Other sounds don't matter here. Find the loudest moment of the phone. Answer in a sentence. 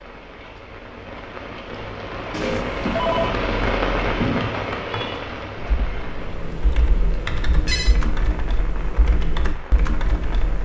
The loudest moment of the phone is at 3 seconds.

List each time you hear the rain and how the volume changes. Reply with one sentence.
You can hear the rain from 0.0 to 10.6 s, getting louder then quieter.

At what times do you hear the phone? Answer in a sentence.
You can hear the phone from 2.3 to 3.4 s and from 7.5 to 8.0 s.